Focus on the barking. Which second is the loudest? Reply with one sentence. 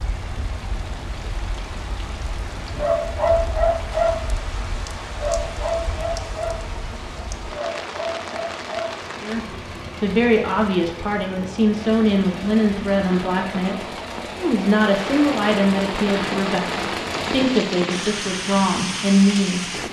The loudest moment of the barking is at 3 seconds.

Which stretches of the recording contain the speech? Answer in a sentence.
You can hear the speech from 9.2 to 19.8 s.